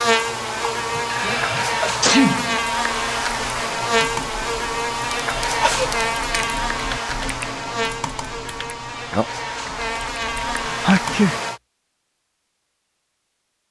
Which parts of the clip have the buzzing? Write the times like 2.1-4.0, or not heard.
0.0-11.6.